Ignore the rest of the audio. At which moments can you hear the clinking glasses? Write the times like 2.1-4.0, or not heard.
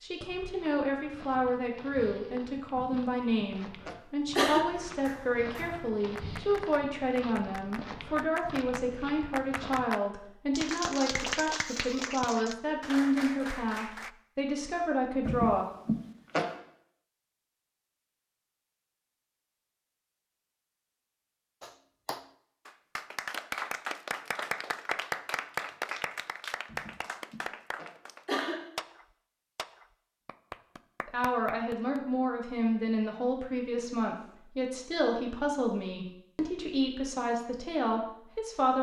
not heard.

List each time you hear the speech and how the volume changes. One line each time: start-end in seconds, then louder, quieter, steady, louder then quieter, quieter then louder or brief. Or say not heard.
0.0-15.7 steady
31.1-38.7 steady.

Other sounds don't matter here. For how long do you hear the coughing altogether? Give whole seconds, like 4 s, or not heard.
5 s.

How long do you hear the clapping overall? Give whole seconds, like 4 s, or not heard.
20 s.